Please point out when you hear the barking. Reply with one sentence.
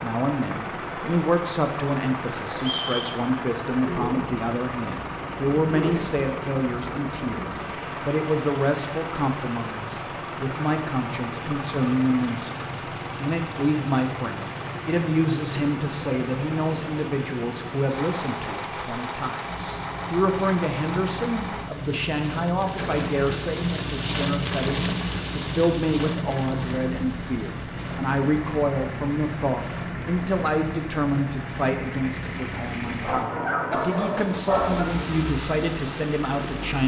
You can hear the barking from 33.0 to 34.9 s.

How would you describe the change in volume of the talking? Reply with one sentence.
The volume of the talking stays about the same.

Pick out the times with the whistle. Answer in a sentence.
The whistle can be heard from 2.5 to 3.1 s.